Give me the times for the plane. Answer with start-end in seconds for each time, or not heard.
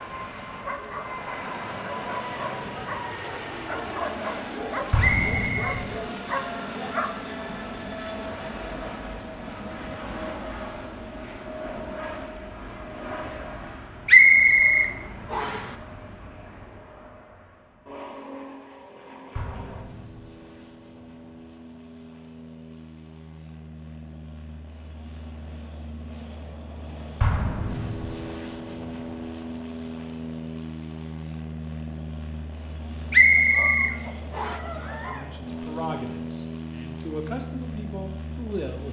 0.0-38.8.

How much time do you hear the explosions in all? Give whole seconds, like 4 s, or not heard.
3 s.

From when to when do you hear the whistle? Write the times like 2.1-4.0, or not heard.
5.0-5.8, 14.1-15.7, 33.1-34.6.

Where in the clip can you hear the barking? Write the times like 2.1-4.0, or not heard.
0.0-7.4, 33.4-35.2.